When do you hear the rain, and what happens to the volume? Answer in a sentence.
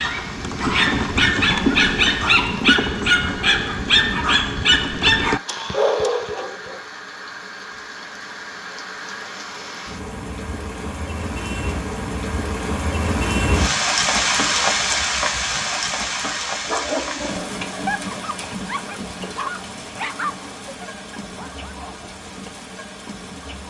You can hear the rain from 0.0 to 23.6 s, getting louder then quieter.